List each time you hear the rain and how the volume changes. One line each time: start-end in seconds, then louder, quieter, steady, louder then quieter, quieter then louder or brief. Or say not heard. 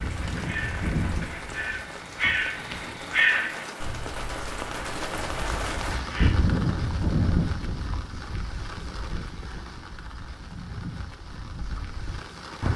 0.0-12.7 louder then quieter.